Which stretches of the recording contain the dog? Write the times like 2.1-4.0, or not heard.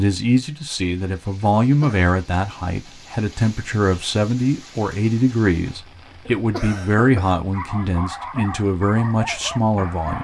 7.5-10.1.